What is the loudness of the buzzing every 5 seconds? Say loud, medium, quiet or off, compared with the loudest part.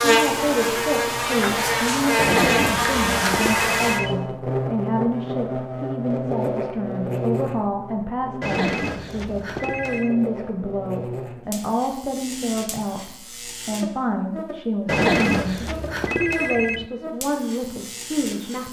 loud, medium, quiet, quiet.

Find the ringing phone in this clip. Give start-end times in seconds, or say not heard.
2.1-4.2, 8.4-10.2, 14.8-16.9.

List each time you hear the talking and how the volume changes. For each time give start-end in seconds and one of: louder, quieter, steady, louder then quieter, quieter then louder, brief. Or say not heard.
0.0-18.6 steady.